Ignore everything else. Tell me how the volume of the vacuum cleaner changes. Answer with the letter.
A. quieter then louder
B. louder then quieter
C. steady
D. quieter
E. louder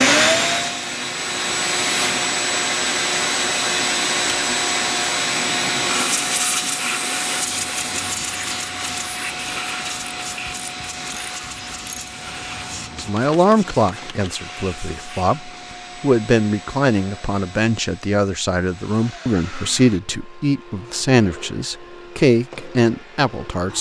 D.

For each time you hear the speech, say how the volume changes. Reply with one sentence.
You can hear the speech from 12.9 to 23.7 s, at a steady volume.